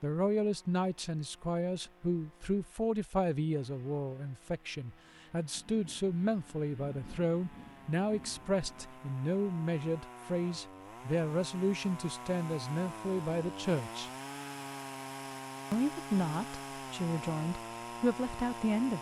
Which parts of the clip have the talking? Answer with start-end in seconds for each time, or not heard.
0.0-14.1, 15.7-18.9.